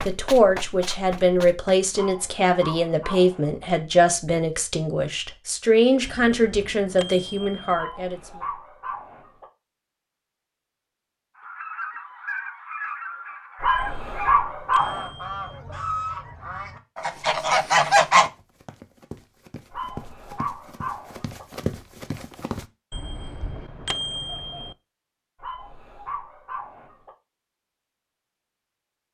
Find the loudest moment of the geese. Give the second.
18 s.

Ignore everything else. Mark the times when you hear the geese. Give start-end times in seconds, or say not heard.
11.3-18.3.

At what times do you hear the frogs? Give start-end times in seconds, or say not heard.
not heard.